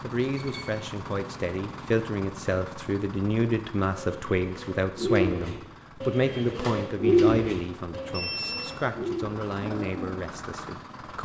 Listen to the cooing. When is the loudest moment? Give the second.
7 s.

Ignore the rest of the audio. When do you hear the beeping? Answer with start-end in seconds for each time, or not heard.
0.2-0.8, 8.1-8.8.